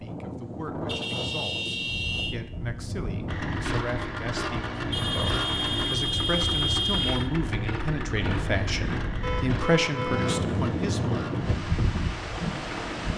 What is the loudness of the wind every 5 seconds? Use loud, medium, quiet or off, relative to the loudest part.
medium, medium, loud.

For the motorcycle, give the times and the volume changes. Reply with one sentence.
The motorcycle can be heard from 3.2 to 13.1 s, getting quieter.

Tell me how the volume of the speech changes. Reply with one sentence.
The volume of the speech goes up.